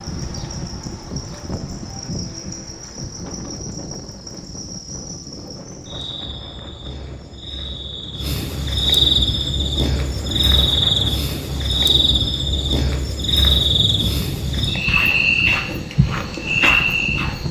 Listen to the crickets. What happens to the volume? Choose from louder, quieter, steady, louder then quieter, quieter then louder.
louder.